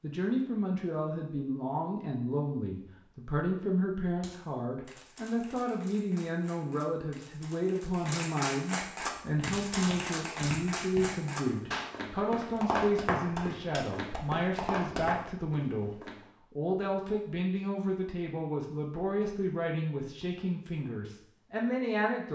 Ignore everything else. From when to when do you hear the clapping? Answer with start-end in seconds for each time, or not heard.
4.2-15.2.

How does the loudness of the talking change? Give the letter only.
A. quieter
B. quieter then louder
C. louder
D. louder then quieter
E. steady
E.